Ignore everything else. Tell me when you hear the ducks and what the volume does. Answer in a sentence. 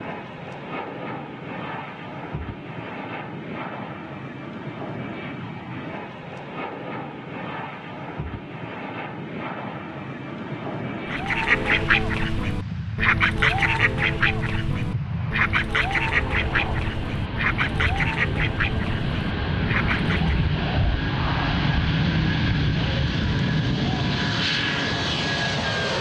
The ducks can be heard from 11.1 to 20.6 s, getting quieter.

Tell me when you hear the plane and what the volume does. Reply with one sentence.
You can hear the plane from 0.0 to 25.9 s, getting louder.